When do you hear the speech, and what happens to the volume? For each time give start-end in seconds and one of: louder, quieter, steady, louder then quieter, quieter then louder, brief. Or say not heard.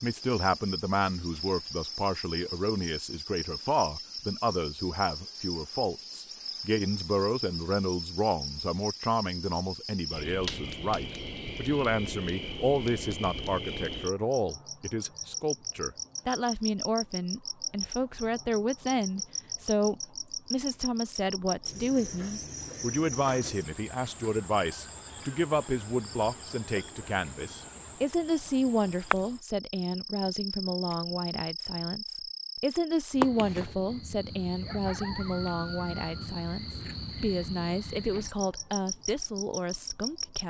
0.0-40.4 steady.